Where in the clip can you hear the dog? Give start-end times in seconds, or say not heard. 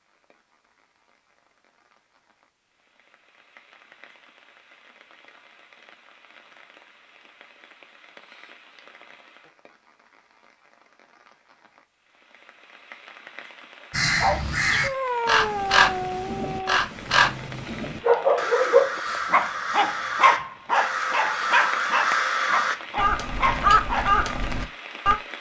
14.2-24.1.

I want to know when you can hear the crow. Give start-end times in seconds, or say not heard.
13.9-25.1.